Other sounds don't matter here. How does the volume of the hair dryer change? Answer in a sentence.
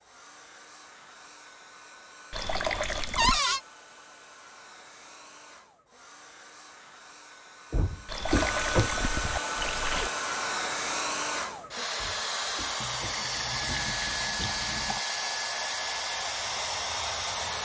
The loudness of the hair dryer goes up.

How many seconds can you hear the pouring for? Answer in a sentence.
You can hear the pouring for 5 seconds altogether.